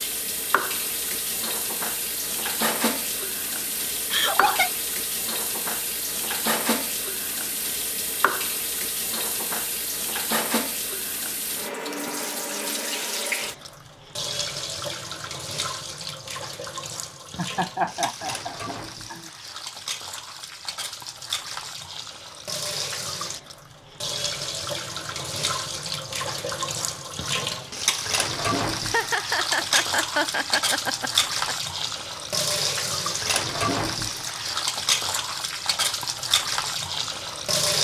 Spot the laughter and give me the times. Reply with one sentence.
The laughter can be heard from 4.1 to 4.7 s, from 17.4 to 19.3 s and from 28.8 to 31.6 s.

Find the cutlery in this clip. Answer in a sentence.
The cutlery can't be heard in this clip.